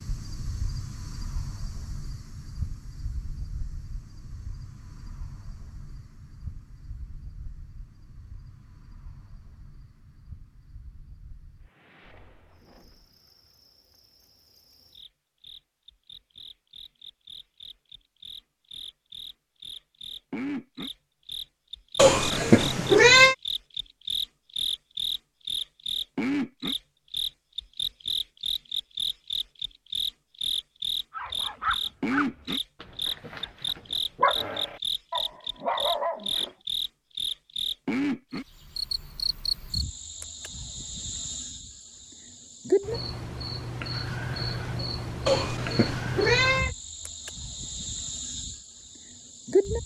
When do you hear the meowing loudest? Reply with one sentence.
The loudest moment of the meowing is at 23 seconds.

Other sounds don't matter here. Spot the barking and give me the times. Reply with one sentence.
The barking can be heard from 31.1 to 36.5 s.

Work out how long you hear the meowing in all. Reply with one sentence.
You can hear the meowing for 3 seconds altogether.